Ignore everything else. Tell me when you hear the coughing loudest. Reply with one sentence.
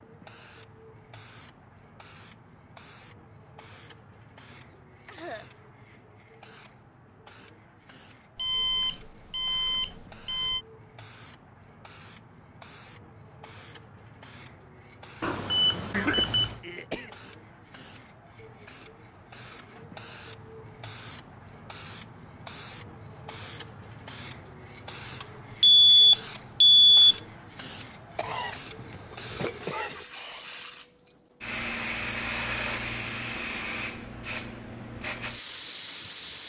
The loudest moment of the coughing is at 16 seconds.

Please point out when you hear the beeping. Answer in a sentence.
The beeping can be heard from 8.3 to 10.7 s, from 15.2 to 16.6 s and from 25.6 to 27.1 s.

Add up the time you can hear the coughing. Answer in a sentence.
You can hear the coughing for 4 seconds altogether.